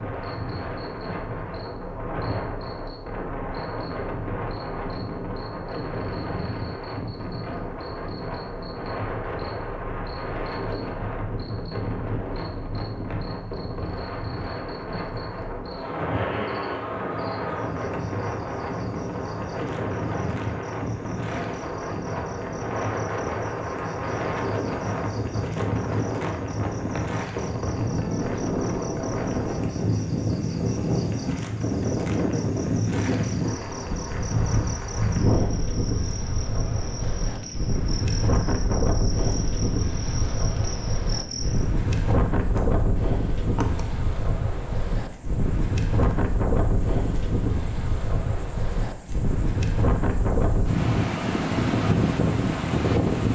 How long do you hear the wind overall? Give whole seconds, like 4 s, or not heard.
53 s.